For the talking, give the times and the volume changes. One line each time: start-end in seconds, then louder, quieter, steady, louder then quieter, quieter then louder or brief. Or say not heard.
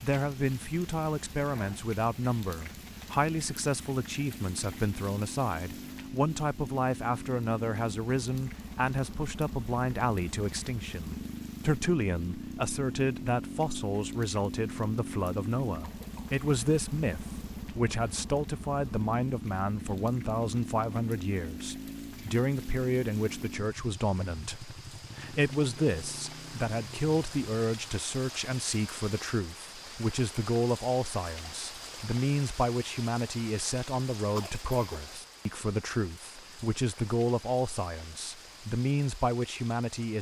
0.0-40.1 steady.